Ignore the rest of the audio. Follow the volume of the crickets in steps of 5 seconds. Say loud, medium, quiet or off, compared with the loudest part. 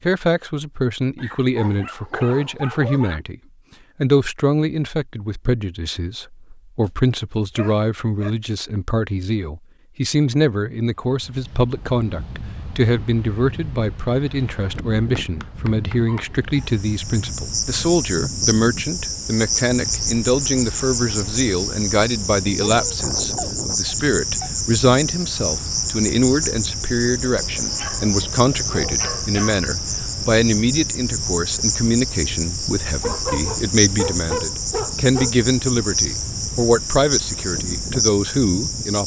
off, off, off, loud, loud, loud, loud, loud.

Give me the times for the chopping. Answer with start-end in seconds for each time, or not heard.
not heard.